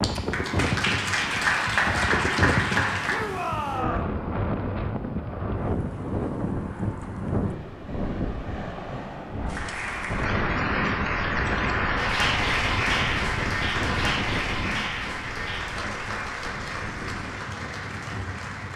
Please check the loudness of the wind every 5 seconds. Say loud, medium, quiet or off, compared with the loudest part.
loud, loud, loud, medium.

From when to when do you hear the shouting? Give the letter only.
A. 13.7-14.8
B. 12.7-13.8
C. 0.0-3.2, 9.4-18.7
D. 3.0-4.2
D.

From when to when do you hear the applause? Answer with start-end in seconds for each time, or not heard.
0.0-3.2, 9.4-18.7.